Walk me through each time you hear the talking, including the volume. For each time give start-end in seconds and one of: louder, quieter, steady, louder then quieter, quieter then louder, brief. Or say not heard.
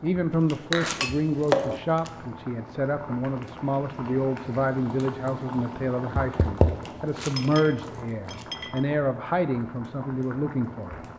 0.0-10.9 steady.